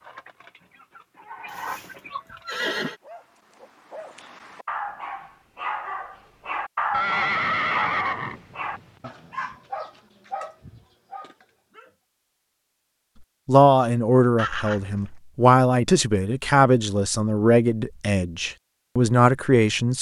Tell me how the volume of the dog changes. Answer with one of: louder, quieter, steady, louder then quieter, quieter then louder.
louder then quieter.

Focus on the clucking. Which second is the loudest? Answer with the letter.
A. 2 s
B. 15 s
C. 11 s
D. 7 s
A.